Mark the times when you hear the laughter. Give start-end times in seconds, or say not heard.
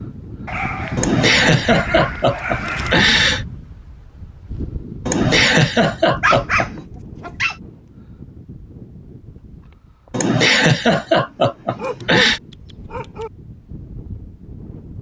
0.9-3.5, 5.0-6.8, 10.1-12.4.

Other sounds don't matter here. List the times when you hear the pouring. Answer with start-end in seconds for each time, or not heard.
not heard.